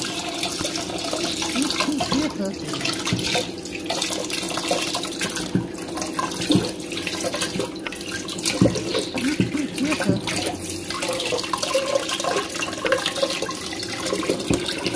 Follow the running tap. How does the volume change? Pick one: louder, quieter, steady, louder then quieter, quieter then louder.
steady.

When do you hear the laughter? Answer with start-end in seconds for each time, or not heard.
1.1-3.0, 8.7-10.2.